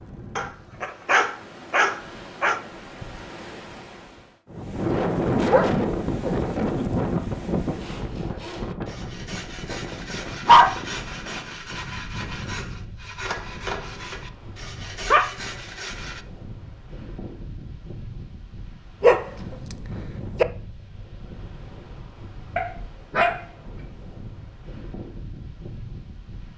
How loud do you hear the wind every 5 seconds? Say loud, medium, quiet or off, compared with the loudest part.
medium, loud, quiet, quiet, quiet, quiet.